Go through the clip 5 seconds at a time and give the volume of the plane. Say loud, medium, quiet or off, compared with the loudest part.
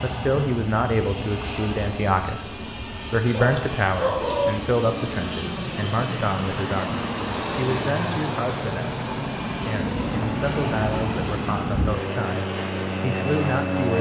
medium, loud, loud.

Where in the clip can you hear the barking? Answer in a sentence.
You can hear the barking from 3.3 to 4.5 s.